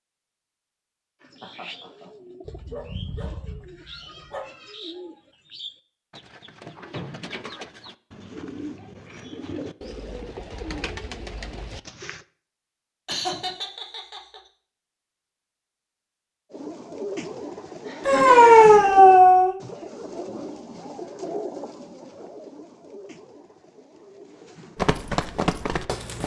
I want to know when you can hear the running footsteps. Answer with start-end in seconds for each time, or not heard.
24.8-26.2.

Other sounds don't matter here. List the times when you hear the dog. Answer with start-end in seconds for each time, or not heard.
2.5-4.5, 18.1-19.6.